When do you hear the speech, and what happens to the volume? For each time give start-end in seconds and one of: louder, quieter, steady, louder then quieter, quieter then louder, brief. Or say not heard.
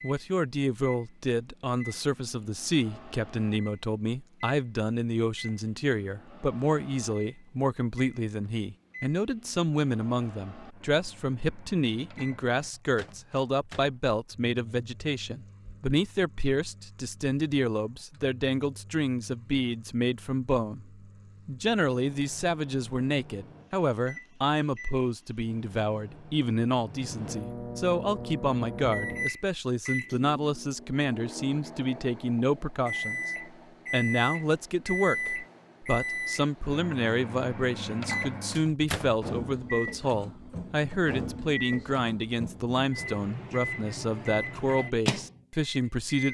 0.0-46.2 steady.